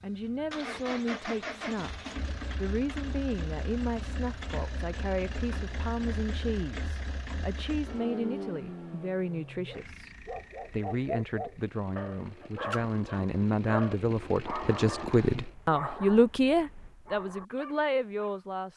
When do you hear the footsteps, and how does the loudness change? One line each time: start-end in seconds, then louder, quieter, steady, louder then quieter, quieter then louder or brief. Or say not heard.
not heard.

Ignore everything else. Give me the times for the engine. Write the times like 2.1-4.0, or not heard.
0.0-15.6.